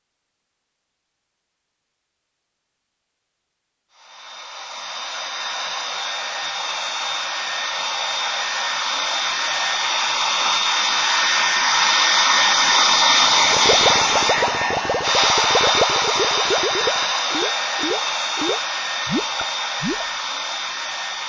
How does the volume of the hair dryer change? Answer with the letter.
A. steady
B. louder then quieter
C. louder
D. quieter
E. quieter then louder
B.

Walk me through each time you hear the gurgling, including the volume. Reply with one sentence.
The gurgling can be heard from 13.3 to 20.1 s, at a steady volume.